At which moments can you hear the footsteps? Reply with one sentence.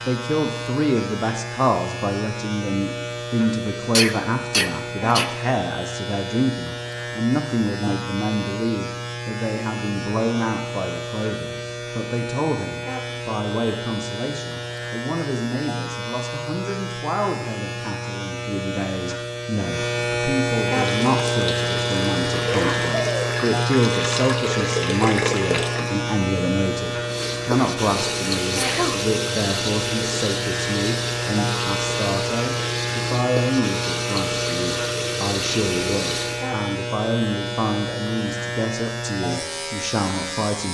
You can't hear the footsteps here.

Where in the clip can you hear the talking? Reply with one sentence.
You can hear the talking from 0.0 to 40.7 s.